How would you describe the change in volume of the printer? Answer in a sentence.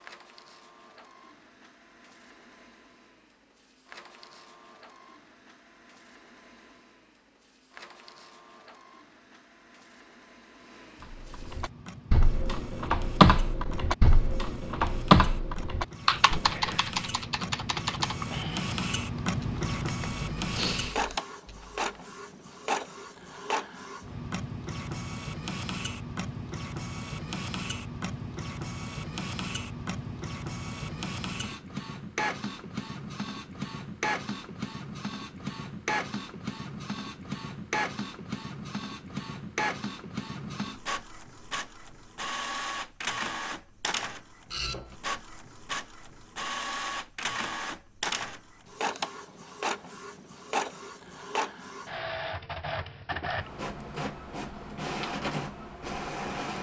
The loudness of the printer goes up.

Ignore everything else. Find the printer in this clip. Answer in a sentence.
You can hear the printer from 0.0 to 56.5 s.